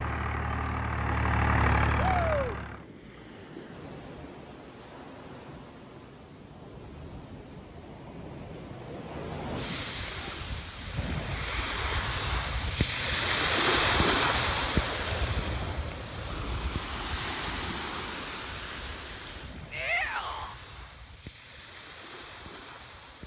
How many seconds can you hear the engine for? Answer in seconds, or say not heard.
3 s.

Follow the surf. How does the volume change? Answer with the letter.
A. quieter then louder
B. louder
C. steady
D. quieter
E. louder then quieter
E.